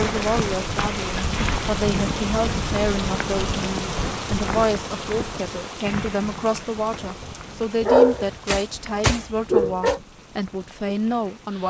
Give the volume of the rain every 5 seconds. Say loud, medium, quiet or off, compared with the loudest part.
loud, medium, quiet.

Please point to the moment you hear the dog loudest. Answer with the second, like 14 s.
8 s.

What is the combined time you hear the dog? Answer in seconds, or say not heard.
2 s.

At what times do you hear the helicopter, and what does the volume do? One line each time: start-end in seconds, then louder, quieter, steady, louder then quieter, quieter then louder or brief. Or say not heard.
not heard.